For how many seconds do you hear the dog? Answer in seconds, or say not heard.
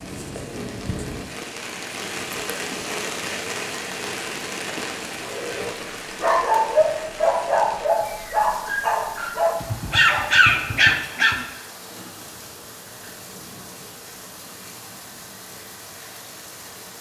6 s.